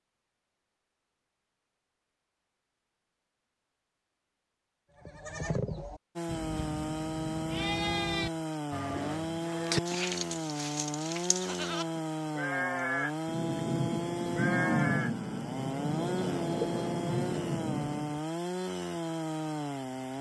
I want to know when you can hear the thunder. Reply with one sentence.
You can hear the thunder from 13.2 to 18.2 s.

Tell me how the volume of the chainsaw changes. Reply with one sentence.
The loudness of the chainsaw stays about the same.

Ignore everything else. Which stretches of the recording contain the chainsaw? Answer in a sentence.
You can hear the chainsaw from 6.2 to 20.1 s.